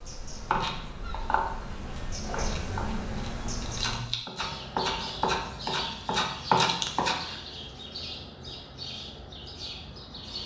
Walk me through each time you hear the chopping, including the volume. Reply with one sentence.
You can hear the chopping from 0.5 to 7.2 s, getting quieter then louder.